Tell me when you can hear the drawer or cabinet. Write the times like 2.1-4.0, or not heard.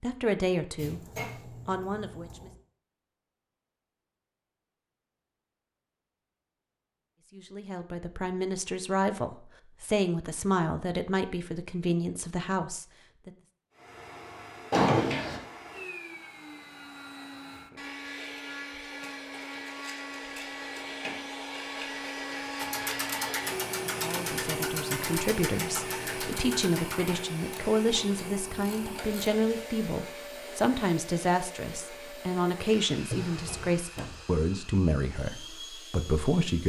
0.8-2.5, 14.7-15.4, 33.0-34.2.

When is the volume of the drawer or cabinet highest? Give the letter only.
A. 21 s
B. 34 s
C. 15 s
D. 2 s
C.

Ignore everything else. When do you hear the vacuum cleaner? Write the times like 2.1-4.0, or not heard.
13.7-36.6.